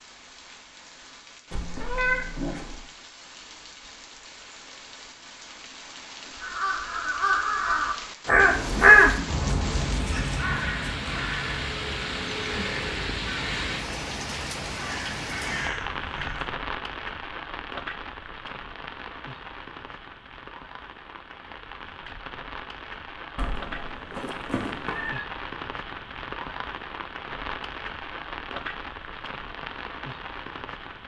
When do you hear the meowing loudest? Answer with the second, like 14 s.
2 s.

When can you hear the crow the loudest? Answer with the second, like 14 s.
9 s.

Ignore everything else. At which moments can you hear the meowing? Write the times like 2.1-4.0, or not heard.
1.5-2.8, 23.4-25.2.